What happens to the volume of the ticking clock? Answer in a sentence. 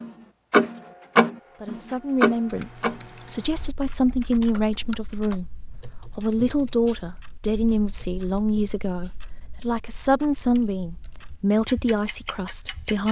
The volume of the ticking clock goes down, then up.